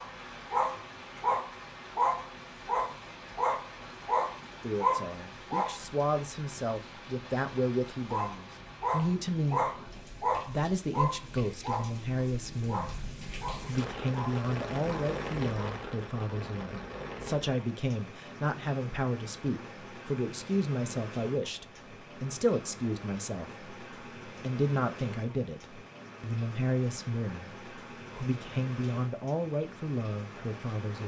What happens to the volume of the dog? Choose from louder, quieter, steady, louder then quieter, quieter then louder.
quieter.